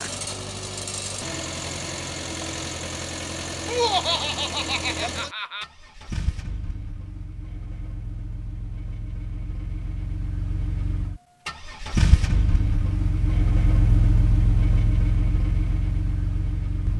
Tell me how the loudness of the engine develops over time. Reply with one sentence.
The loudness of the engine goes down, then up.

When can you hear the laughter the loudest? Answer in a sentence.
The loudest moment of the laughter is at 4 seconds.